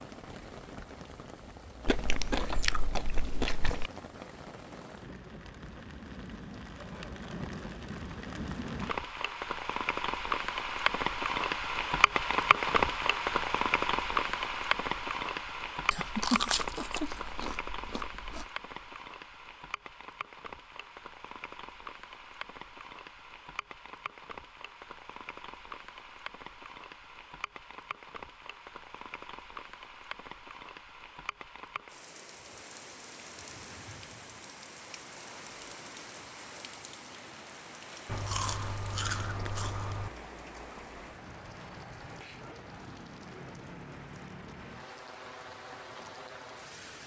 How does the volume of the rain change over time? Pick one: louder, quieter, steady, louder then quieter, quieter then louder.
louder then quieter.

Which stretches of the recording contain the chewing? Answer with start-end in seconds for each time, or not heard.
1.9-3.9, 15.9-18.4, 38.0-40.1.